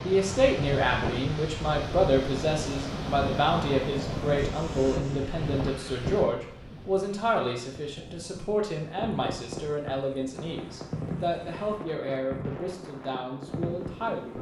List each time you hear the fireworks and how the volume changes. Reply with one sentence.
You can hear the fireworks from 8.8 to 14.3 s, at a steady volume.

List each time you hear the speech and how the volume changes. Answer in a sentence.
You can hear the speech from 0.0 to 14.3 s, getting quieter.